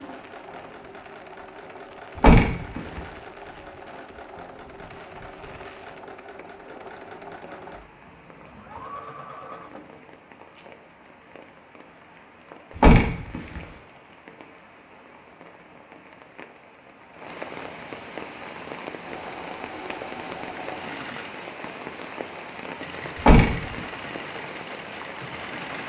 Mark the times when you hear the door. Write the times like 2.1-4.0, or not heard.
2.1-3.0, 12.8-13.6, 23.2-23.8.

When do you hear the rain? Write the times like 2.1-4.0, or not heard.
0.0-25.8.